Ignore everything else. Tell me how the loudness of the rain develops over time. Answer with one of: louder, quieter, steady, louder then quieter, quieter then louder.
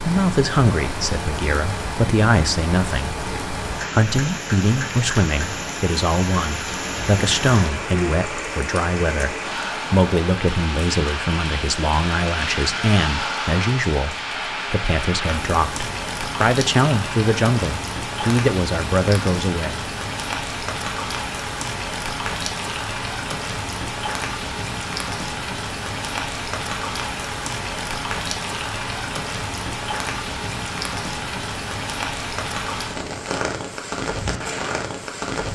steady.